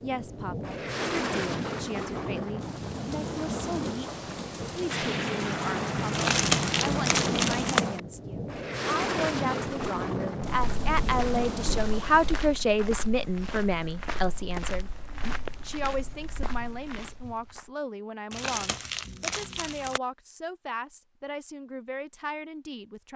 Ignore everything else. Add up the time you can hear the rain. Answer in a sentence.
The rain can be heard for 13 seconds in total.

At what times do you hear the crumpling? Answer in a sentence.
The crumpling can be heard from 6.1 to 7.8 s and from 18.3 to 20.0 s.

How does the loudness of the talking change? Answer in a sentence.
The loudness of the talking goes up, then down.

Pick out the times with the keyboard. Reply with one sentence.
You can't hear the keyboard here.